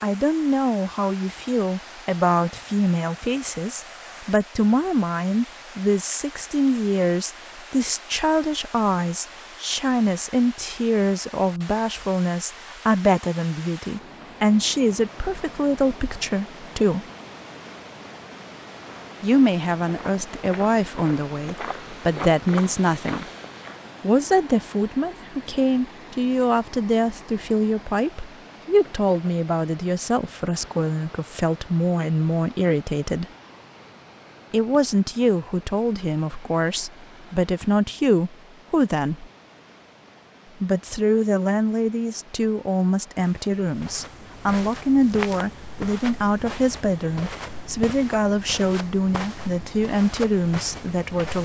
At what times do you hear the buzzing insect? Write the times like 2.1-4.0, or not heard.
not heard.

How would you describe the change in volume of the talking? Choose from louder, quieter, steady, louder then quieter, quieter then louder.
steady.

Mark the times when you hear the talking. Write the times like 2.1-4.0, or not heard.
0.0-17.1, 19.2-23.2, 24.0-33.2, 34.5-39.2, 40.6-51.4.